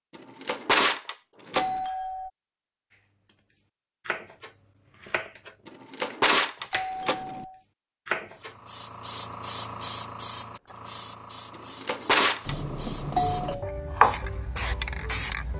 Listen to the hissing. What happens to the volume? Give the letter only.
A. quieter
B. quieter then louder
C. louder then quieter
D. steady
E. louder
B.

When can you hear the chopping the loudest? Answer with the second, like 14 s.
14 s.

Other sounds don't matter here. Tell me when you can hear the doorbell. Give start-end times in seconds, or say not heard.
1.5-2.3, 6.7-7.6, 12.4-13.7.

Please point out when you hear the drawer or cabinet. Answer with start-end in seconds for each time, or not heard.
0.1-1.8, 5.7-7.5, 11.6-12.6.